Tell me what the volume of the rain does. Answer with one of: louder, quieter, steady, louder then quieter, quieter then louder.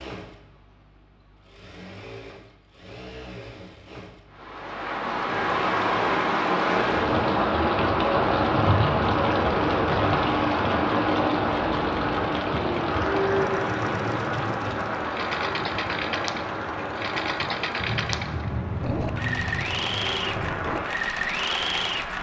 quieter.